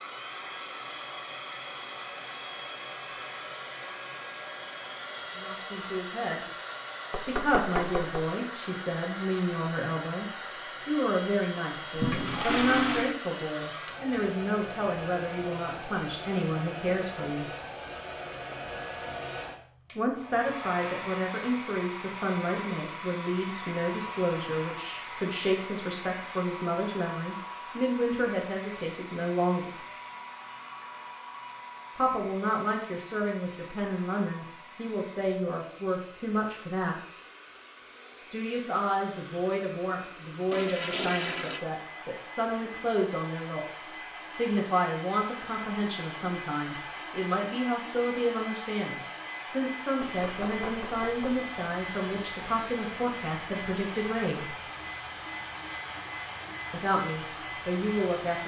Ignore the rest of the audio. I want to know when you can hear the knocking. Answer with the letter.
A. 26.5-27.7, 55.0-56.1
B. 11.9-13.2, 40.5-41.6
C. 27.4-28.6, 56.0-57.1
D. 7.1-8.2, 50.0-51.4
D.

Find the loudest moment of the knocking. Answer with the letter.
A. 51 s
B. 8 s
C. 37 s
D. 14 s
B.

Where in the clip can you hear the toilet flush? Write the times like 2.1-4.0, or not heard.
11.9-13.2, 40.5-41.6.